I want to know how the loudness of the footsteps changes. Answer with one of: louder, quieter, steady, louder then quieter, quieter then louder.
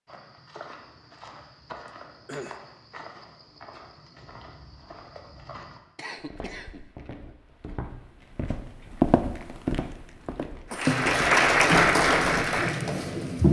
louder.